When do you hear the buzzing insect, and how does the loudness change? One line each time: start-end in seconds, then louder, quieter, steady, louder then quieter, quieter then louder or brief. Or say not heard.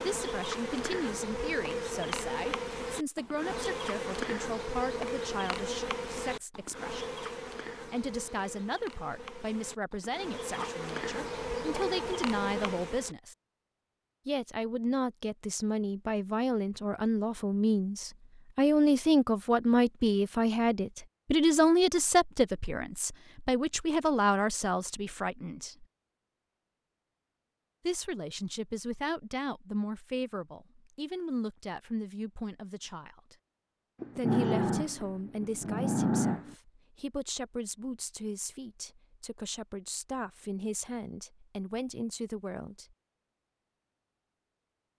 0.0-13.2 quieter then louder.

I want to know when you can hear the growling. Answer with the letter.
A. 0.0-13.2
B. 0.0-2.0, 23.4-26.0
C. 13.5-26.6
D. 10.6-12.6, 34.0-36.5
D.